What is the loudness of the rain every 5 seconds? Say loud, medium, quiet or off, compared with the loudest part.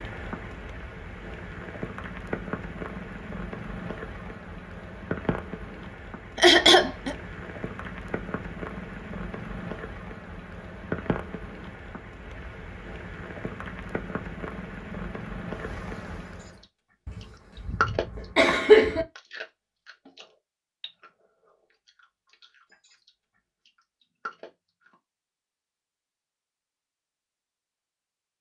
loud, loud, loud, loud, off, off.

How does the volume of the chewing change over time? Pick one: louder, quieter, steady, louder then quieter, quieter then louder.
quieter then louder.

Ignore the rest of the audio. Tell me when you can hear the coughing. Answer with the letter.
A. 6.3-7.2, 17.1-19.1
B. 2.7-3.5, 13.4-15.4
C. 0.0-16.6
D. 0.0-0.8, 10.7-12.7
A.